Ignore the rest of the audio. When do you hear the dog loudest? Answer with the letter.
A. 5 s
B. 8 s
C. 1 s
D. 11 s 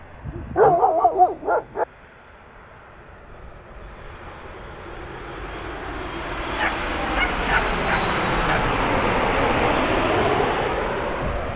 C.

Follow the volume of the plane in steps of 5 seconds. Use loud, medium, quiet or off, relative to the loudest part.
quiet, loud, loud.